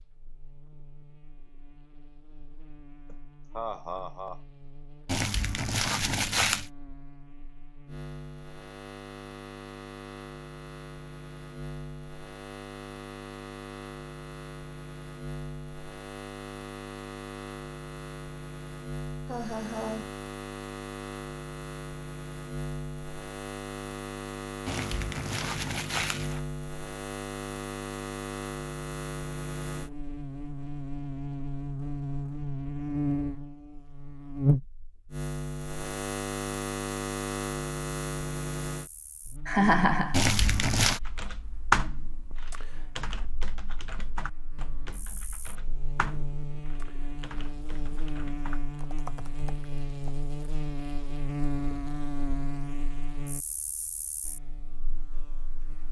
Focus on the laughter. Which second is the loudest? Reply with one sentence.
The volume of the laughter peaks at 40 seconds.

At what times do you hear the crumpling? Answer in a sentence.
You can hear the crumpling from 5.0 to 6.7 s, from 24.6 to 26.4 s and from 40.1 to 41.0 s.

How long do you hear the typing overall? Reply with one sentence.
The typing can be heard for 9 seconds in total.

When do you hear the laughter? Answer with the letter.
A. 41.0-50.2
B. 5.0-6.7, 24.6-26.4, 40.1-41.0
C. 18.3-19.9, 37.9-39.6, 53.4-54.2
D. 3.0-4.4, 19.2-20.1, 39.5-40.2
D.